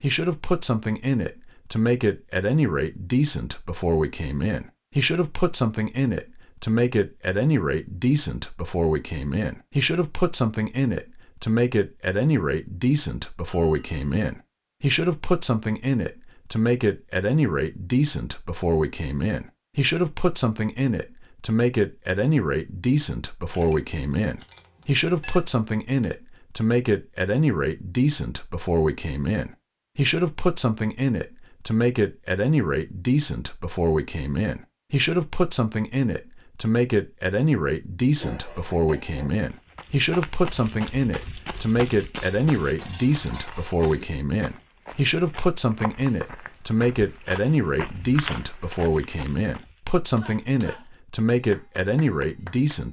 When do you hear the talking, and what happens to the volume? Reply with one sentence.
You can hear the talking from 0.0 to 52.8 s, at a steady volume.